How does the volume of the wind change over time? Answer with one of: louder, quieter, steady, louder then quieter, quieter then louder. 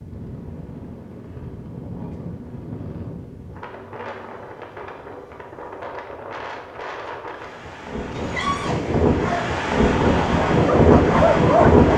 louder.